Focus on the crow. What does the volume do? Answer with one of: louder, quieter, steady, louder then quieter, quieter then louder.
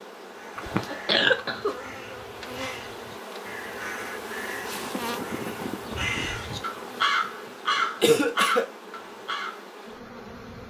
louder.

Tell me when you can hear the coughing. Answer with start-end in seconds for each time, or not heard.
0.6-1.8, 8.0-8.7.